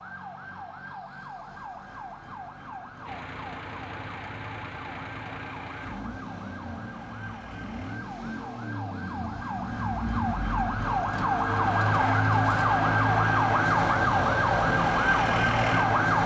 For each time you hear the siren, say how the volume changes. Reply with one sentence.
The siren can be heard from 0.0 to 16.2 s, getting louder.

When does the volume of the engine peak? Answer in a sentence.
The volume of the engine peaks at 10 seconds.